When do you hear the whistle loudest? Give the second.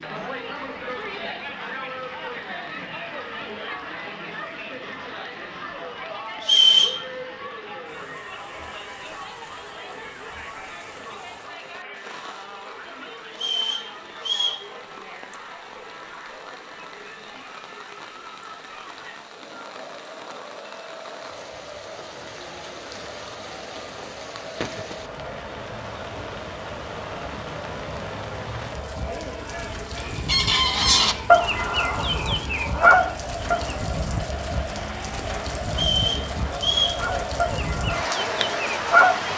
7 s.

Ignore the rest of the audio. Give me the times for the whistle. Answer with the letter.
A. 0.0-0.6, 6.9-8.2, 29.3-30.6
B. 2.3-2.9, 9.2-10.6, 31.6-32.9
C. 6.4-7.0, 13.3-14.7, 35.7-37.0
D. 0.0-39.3
C.